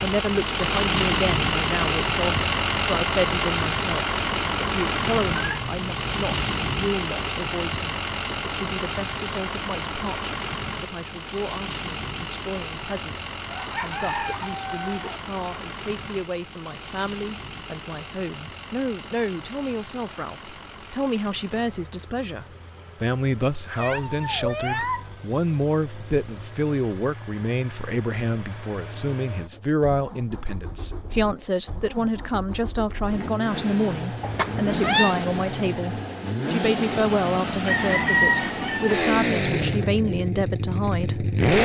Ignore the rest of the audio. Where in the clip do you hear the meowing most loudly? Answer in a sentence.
The volume of the meowing peaks at 35 seconds.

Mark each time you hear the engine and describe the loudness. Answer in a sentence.
The engine can be heard from 0.0 to 41.6 s, getting quieter then louder.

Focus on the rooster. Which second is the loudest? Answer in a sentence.
The volume of the rooster peaks at 38 seconds.